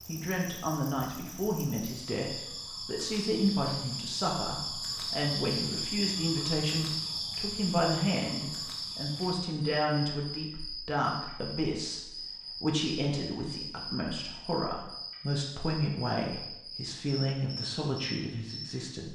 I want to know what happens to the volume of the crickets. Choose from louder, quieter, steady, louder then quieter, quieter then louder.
louder then quieter.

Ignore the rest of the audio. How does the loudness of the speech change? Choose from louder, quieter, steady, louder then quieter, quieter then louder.
steady.